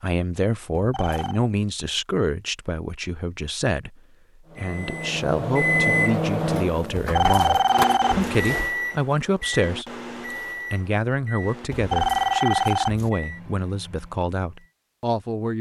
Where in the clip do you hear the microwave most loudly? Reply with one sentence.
The volume of the microwave peaks at 6 seconds.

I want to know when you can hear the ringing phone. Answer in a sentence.
The ringing phone can be heard from 0.8 to 1.4 s, from 7.0 to 8.7 s and from 11.7 to 13.1 s.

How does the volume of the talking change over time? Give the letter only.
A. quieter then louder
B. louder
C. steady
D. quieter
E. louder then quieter
C.